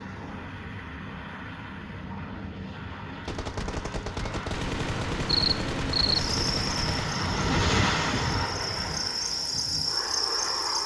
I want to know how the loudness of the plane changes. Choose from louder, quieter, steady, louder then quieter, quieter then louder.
louder then quieter.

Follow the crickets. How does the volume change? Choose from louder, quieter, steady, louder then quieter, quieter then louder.
quieter then louder.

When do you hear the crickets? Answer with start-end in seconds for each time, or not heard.
5.2-10.8.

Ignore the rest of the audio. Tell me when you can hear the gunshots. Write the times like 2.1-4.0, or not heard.
3.2-7.1.